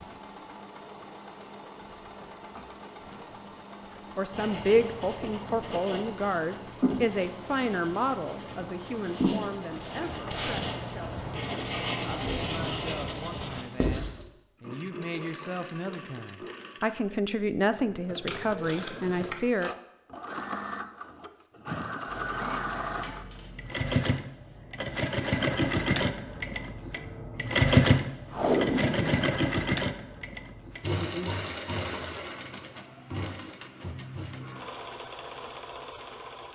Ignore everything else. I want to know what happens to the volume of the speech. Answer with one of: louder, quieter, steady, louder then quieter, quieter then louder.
quieter then louder.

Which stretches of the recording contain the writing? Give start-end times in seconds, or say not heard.
4.3-14.2.